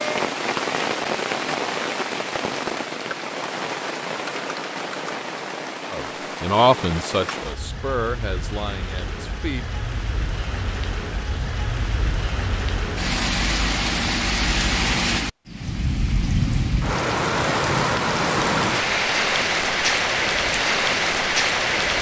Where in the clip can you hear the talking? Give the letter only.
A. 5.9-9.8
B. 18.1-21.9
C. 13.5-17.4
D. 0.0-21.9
A.